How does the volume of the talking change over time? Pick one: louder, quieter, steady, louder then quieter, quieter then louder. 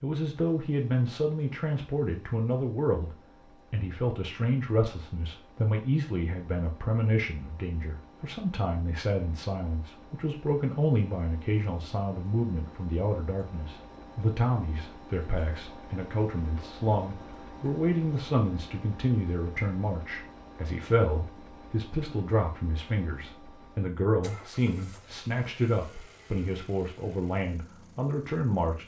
steady.